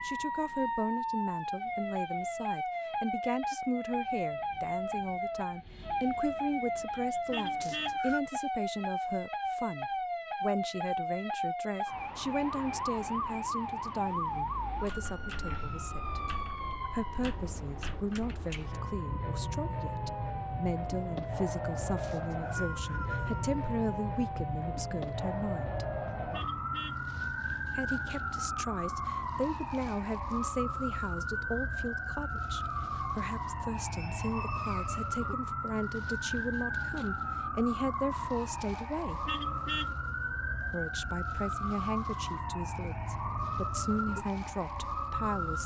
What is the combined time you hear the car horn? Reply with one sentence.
The car horn can be heard for 2 seconds in total.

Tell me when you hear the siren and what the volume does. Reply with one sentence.
You can hear the siren from 0.0 to 45.6 s, at a steady volume.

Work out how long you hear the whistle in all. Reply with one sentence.
The whistle can be heard for 4 seconds in total.